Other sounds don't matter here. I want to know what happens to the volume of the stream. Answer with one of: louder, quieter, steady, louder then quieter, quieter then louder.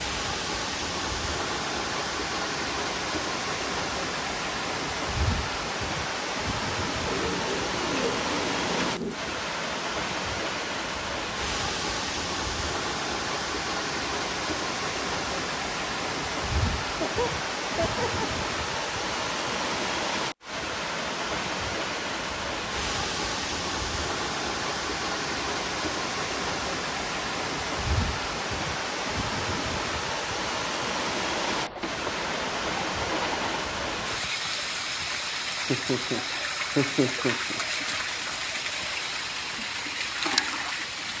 steady.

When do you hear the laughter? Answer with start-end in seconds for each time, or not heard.
16.9-18.2, 35.6-37.6.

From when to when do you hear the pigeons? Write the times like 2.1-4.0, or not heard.
7.0-9.3, 31.2-33.8.